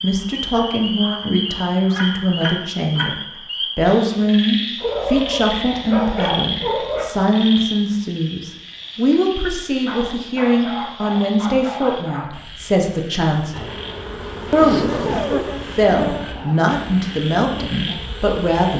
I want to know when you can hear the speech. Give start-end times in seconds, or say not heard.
0.0-3.1, 3.8-13.7, 14.5-18.7.